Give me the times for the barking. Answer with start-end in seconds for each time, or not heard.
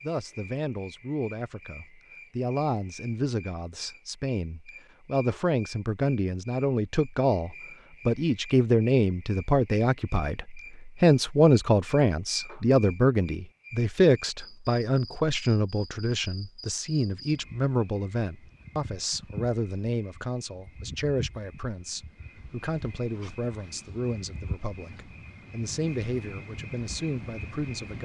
not heard.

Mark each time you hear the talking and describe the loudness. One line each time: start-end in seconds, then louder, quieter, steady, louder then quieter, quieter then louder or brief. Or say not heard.
0.0-28.0 louder then quieter.